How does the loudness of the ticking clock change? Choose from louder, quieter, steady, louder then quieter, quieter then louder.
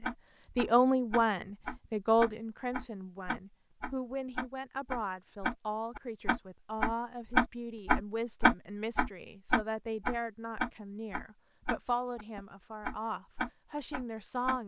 louder then quieter.